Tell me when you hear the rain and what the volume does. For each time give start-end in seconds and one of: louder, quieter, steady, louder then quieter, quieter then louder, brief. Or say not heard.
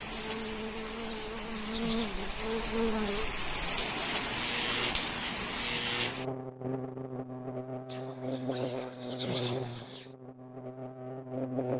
0.0-6.2 louder.